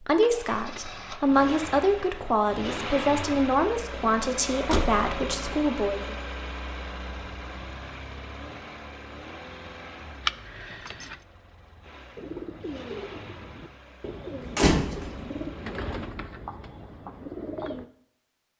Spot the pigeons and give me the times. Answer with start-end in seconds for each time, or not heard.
12.2-17.9.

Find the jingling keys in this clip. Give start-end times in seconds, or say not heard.
10.2-11.2.